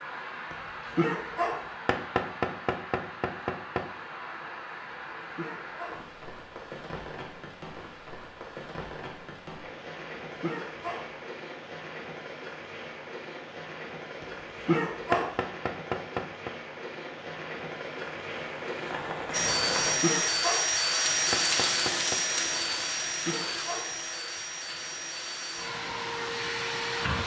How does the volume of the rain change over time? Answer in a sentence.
The volume of the rain goes up.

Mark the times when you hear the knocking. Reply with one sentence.
You can hear the knocking from 1.9 to 3.9 s, from 15.1 to 16.6 s and from 21.3 to 22.2 s.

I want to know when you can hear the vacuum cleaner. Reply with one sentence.
You can hear the vacuum cleaner from 19.3 to 27.2 s.